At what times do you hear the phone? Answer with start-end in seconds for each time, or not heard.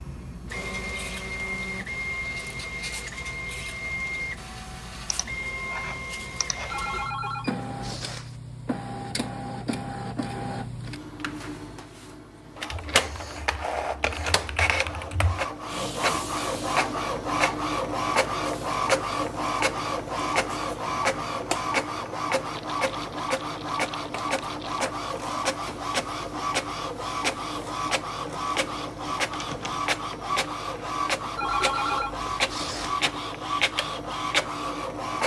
6.7-8.4, 31.4-33.0.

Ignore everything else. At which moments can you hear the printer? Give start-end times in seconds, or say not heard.
0.0-35.2.